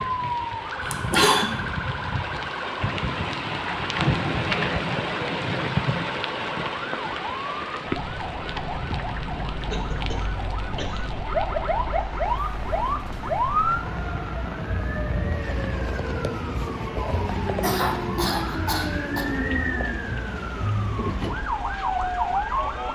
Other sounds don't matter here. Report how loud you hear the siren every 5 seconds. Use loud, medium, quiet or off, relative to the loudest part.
medium, medium, loud, loud, loud.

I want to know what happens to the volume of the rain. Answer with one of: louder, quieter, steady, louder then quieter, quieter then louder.
quieter.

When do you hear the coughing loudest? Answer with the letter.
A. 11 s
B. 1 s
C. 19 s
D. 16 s
B.